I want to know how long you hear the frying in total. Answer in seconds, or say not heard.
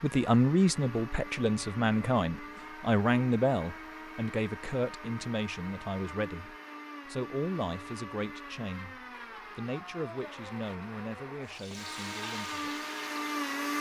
2 s.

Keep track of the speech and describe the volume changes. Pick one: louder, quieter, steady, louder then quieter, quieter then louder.
quieter.